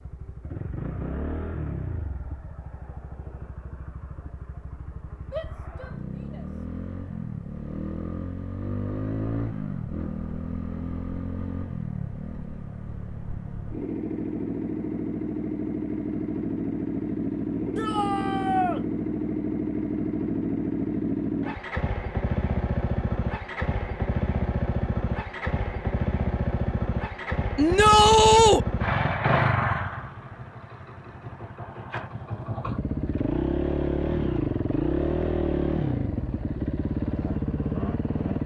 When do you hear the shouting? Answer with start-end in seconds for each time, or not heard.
5.3-6.5, 17.8-18.8, 27.6-28.6.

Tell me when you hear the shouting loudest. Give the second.
28 s.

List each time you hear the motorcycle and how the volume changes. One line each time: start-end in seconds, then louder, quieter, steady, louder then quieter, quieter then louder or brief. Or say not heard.
0.0-38.4 louder.